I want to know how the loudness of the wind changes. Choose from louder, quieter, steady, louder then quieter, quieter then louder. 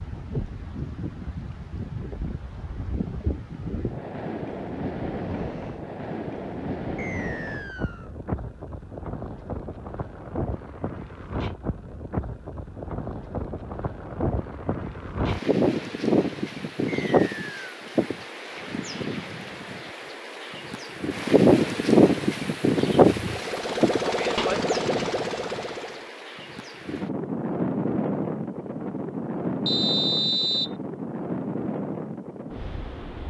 louder then quieter.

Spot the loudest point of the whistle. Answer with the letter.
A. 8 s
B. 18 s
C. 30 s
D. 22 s
C.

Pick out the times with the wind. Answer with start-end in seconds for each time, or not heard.
0.0-33.2.